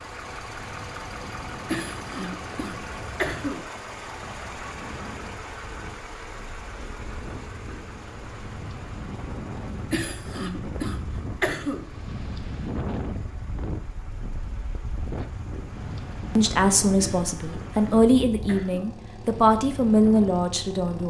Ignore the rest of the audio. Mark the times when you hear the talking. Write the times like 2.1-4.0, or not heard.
16.4-21.0.